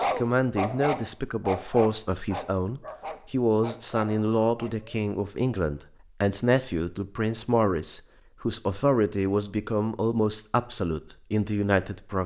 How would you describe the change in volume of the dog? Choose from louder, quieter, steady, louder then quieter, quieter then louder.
quieter.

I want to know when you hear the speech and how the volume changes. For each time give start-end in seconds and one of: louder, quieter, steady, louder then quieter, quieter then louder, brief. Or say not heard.
0.0-12.2 steady.